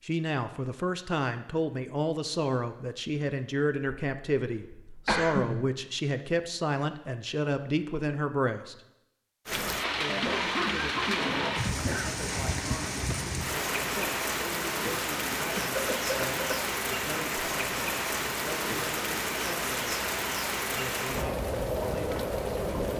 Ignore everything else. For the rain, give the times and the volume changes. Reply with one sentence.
The rain can be heard from 9.4 to 22.9 s, at a steady volume.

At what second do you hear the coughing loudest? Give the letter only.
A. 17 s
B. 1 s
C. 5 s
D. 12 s
C.